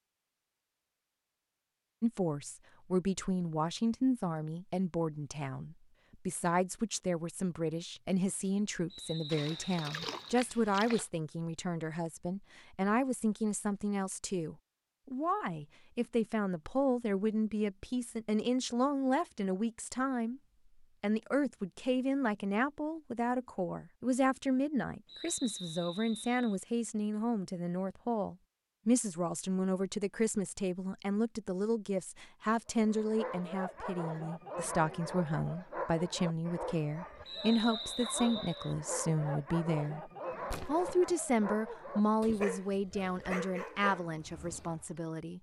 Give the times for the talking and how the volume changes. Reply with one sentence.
You can hear the talking from 2.0 to 20.4 s, at a steady volume; and from 21.0 to 45.3 s, at a steady volume.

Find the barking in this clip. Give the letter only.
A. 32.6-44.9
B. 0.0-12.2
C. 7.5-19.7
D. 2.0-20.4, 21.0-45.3
A.